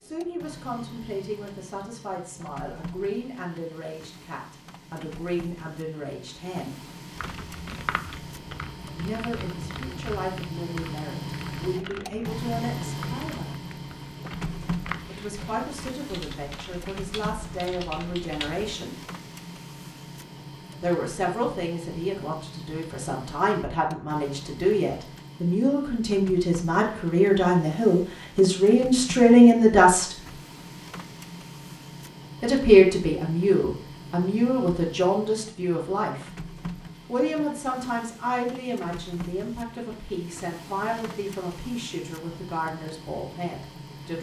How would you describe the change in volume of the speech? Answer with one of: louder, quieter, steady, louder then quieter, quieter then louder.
louder then quieter.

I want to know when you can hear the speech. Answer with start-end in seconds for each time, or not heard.
0.0-6.8, 8.9-13.7, 15.1-19.1, 20.8-30.1, 32.4-36.3, 37.0-44.1.